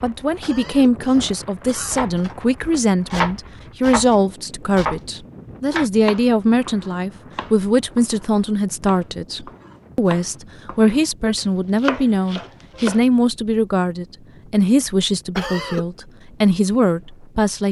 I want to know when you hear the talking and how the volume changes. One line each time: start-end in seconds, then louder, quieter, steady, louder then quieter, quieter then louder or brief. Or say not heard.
0.0-17.6 steady.